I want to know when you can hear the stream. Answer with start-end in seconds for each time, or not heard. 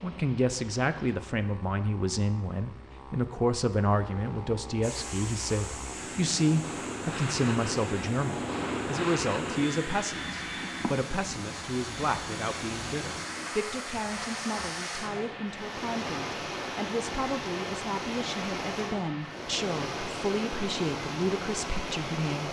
4.8-22.4.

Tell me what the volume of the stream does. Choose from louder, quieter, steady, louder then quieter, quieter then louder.
louder.